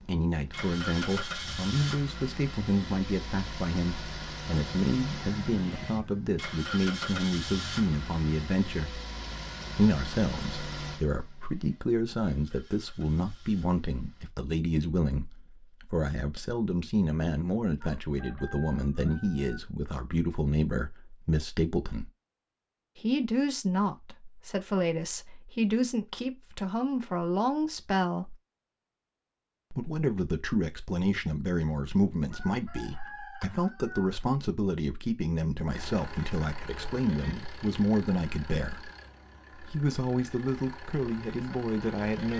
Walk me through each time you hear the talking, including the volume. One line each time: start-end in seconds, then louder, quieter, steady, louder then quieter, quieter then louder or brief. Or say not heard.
0.1-9.0 steady
9.8-22.1 steady
23.0-28.4 steady
29.7-38.9 steady
39.6-42.3 brief.